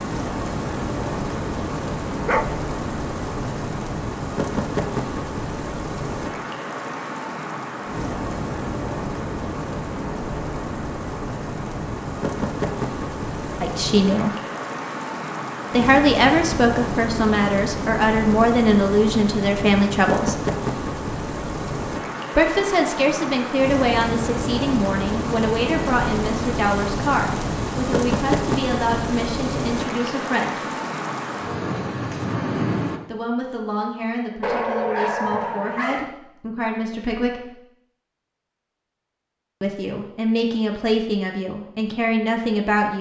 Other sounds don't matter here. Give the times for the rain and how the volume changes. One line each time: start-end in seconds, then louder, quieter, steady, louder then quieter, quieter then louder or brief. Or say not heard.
0.0-33.0 steady.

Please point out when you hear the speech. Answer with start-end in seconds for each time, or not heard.
13.6-14.3, 15.7-20.4, 22.4-30.6, 33.0-37.5, 39.6-42.9.